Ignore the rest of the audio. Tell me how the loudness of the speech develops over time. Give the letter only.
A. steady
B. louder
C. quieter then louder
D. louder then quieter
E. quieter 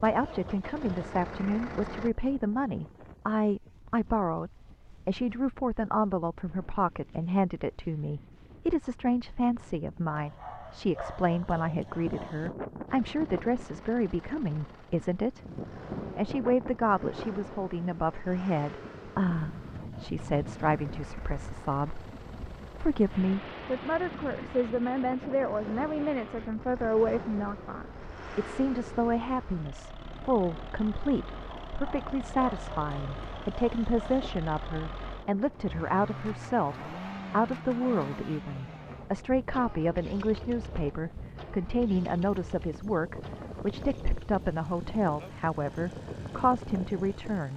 A.